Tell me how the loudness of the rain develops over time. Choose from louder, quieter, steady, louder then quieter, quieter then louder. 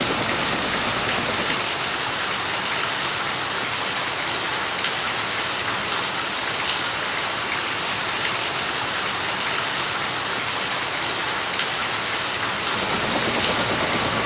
steady.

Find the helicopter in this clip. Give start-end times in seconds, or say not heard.
0.0-1.7, 12.6-14.2.